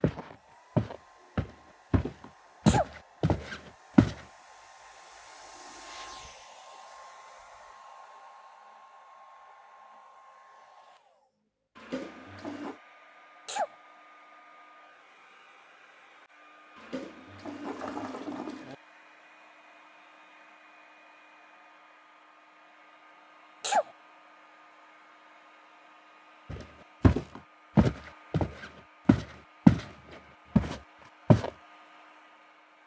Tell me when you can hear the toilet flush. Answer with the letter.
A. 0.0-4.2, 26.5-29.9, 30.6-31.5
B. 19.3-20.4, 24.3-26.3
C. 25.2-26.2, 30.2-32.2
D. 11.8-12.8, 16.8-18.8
D.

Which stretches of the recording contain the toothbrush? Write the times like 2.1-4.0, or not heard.
not heard.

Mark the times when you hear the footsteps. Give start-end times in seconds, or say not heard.
0.0-4.2, 26.5-29.9, 30.6-31.5.